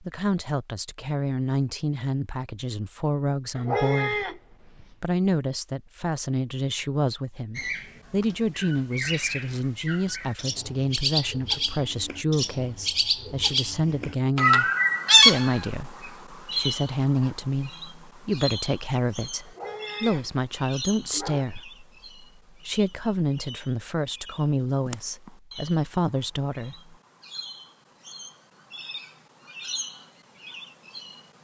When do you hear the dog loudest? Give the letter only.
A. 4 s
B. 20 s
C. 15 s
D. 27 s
A.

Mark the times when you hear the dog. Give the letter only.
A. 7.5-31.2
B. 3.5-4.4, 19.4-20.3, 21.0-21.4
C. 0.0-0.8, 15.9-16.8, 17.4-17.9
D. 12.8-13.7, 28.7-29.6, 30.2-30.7
B.